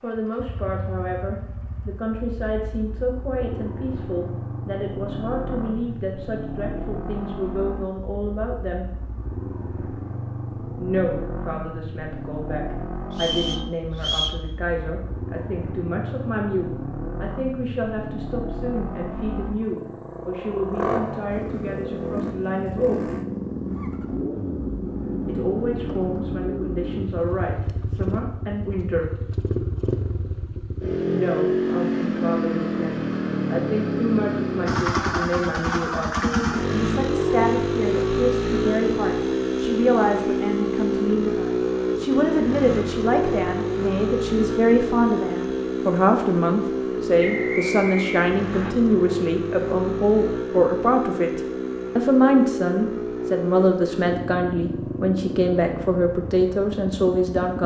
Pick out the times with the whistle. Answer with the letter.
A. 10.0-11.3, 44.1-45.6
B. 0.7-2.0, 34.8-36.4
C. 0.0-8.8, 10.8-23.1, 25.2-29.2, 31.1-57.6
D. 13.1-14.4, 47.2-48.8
D.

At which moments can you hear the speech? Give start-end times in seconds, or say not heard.
0.0-8.8, 10.8-23.1, 25.2-29.2, 31.1-57.6.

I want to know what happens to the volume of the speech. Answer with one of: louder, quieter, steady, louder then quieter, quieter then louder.
louder.